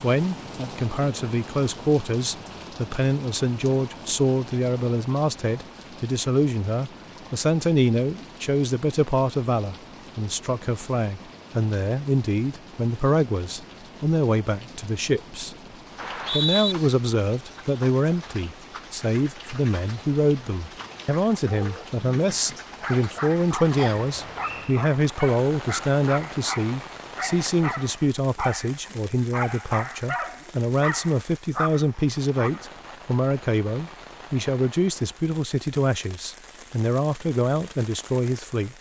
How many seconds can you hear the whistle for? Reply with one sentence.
You can hear the whistle for 2 seconds altogether.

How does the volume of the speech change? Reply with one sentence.
The volume of the speech stays about the same.